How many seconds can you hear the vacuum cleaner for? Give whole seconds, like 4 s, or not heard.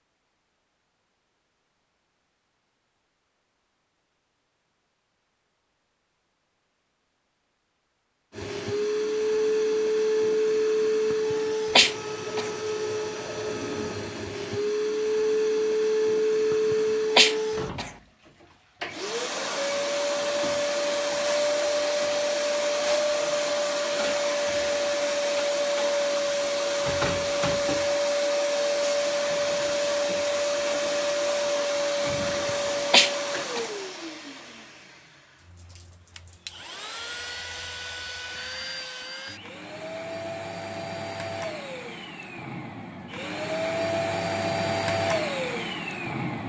38 s.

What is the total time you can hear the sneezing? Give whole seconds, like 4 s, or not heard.
4 s.